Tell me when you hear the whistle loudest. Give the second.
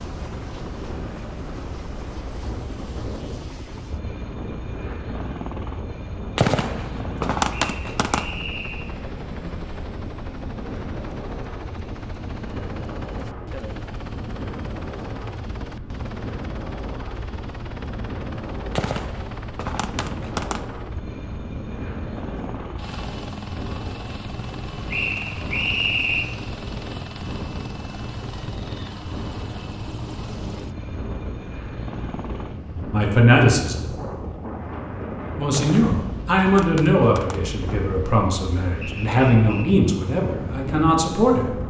26 s.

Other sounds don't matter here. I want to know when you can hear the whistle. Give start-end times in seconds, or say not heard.
7.5-8.9, 24.9-26.3, 38.8-39.8.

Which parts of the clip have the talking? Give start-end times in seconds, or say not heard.
32.9-33.9, 35.4-41.5.